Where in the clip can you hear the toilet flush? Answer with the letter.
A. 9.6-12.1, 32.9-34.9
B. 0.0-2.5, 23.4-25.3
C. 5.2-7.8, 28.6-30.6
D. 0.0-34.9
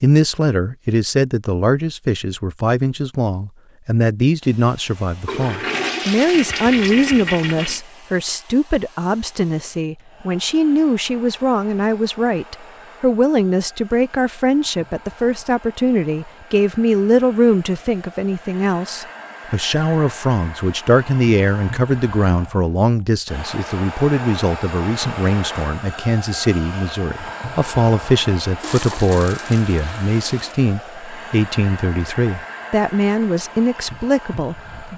C.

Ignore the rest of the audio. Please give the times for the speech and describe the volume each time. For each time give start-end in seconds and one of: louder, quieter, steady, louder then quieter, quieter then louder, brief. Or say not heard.
0.0-34.9 steady.